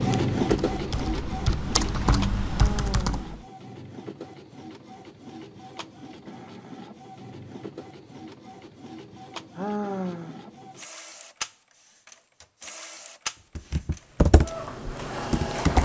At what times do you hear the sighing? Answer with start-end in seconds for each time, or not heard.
2.5-3.5, 9.6-10.4.